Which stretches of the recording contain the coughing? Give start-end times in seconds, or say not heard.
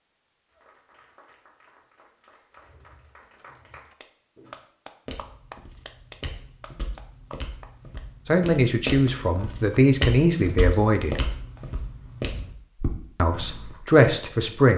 not heard.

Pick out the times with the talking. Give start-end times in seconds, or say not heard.
8.2-11.2, 13.2-14.7.